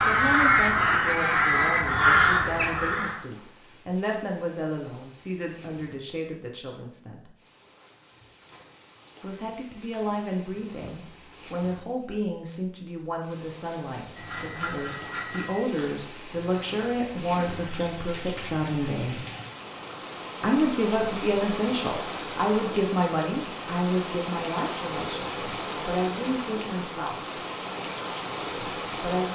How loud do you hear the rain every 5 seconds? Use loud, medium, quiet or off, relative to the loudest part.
quiet, quiet, quiet, medium, loud, loud.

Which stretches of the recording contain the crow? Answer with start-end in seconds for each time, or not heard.
0.0-3.2.